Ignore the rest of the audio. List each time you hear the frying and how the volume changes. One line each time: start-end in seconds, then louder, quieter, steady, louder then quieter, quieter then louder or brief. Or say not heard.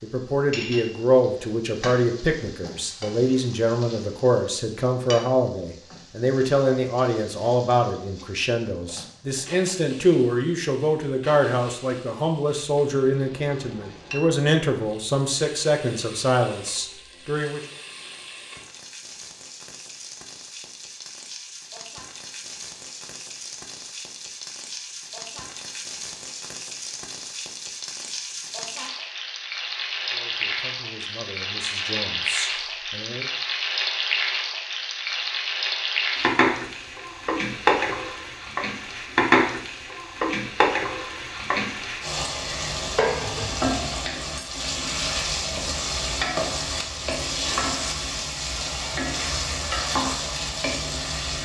0.0-51.4 louder.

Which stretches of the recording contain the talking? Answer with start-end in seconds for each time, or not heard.
0.0-17.6, 30.1-33.2.